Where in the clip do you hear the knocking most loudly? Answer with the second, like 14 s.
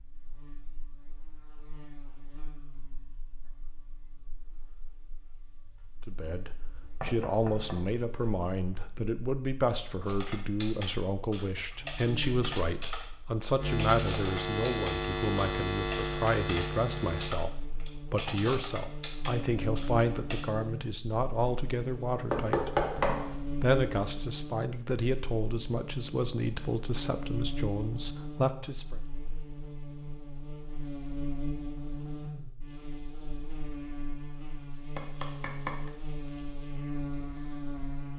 23 s.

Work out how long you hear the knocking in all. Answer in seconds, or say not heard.
3 s.